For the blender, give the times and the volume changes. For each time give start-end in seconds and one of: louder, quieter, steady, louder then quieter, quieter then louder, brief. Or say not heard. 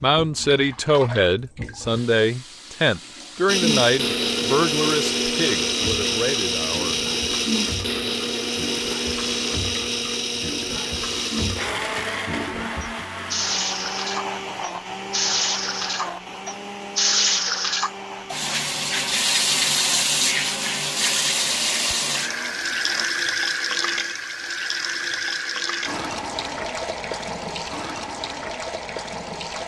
3.5-23.1 quieter.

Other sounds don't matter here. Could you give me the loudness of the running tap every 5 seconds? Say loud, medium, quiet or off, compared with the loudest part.
quiet, quiet, medium, loud, loud, medium.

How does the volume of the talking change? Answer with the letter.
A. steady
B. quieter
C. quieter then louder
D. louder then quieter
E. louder
B.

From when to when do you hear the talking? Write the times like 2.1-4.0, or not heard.
0.0-7.0.